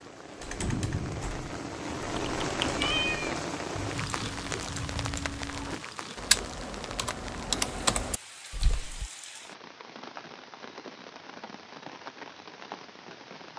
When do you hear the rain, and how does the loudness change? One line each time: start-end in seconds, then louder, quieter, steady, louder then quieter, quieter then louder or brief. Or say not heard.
0.0-13.5 quieter.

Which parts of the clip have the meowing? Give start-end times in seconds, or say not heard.
2.1-3.4.